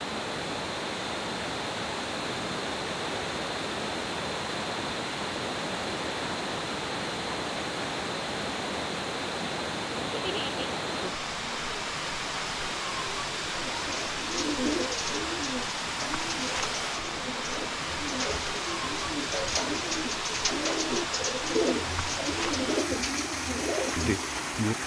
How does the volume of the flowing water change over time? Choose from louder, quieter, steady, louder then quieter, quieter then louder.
steady.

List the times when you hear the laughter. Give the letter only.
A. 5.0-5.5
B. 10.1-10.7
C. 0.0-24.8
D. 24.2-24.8
B.